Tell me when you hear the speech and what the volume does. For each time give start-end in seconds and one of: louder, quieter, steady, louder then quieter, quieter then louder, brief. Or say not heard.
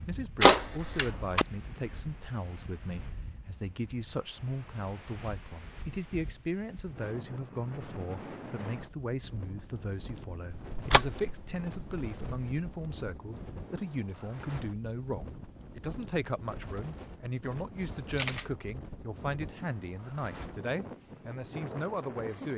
0.1-22.5 steady.